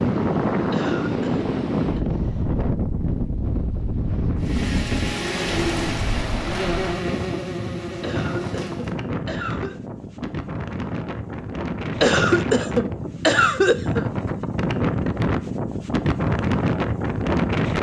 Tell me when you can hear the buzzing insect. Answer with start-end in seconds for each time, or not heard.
4.3-8.9.